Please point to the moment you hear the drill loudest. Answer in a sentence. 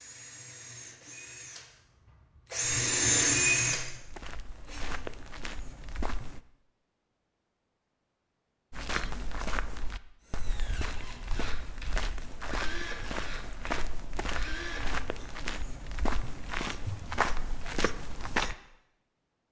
The volume of the drill peaks at 3 seconds.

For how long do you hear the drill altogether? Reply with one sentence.
You can hear the drill for 10 seconds altogether.